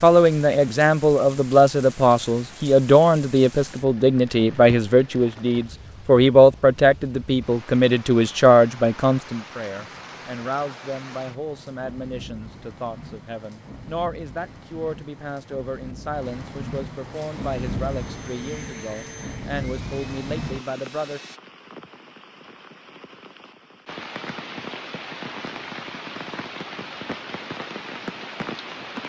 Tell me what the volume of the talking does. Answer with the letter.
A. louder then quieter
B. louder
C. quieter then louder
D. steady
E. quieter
E.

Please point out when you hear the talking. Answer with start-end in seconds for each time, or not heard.
0.0-21.2.